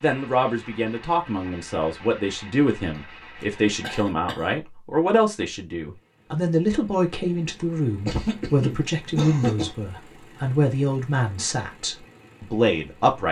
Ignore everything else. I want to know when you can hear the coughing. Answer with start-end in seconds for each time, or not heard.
3.4-4.5, 8.0-9.8.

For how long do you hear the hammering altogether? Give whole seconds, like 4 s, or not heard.
not heard.